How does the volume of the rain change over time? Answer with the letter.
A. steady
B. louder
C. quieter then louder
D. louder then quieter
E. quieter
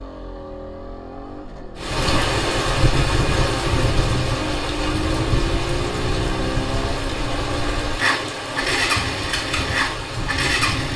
E.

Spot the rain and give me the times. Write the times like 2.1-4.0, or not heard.
1.8-10.9.